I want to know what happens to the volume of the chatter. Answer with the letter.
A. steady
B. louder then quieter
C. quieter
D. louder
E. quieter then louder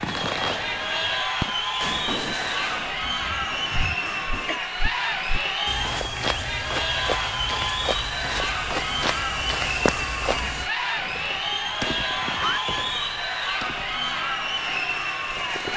A.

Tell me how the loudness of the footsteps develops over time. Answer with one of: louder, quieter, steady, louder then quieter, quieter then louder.
louder.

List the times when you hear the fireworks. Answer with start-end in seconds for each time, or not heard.
0.0-4.6, 10.9-15.7.